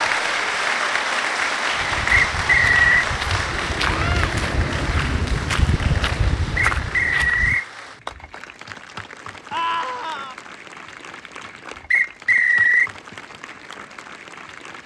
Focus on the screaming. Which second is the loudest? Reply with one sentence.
The volume of the screaming peaks at 10 seconds.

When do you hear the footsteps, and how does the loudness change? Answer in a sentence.
You can hear the footsteps from 1.7 to 7.6 s, getting louder.